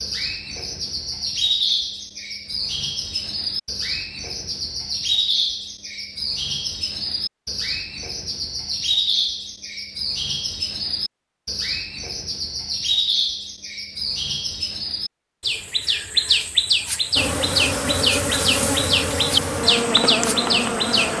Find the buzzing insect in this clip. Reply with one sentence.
You can hear the buzzing insect from 17.1 to 21.1 s.